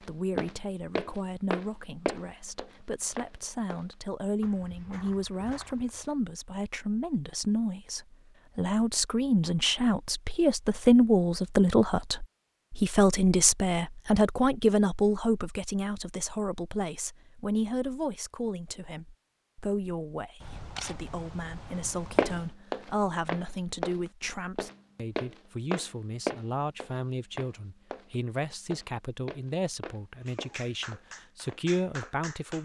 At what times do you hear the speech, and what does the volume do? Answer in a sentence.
You can hear the speech from 0.0 to 32.6 s, getting louder then quieter.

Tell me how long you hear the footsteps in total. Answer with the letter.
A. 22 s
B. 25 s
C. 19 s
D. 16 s
D.